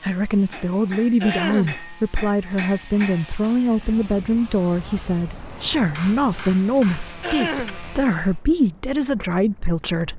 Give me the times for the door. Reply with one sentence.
The door can't be heard in this clip.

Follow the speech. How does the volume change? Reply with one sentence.
The volume of the speech stays about the same.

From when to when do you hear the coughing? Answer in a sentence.
You can hear the coughing from 1.2 to 1.8 s and from 7.2 to 7.8 s.